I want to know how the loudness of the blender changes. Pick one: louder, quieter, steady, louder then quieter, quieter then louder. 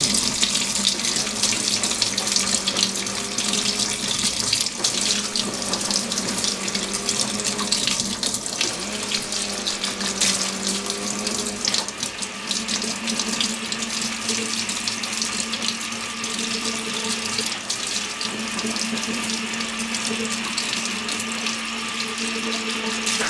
louder.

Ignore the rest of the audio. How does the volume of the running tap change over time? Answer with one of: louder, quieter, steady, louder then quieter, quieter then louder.
quieter.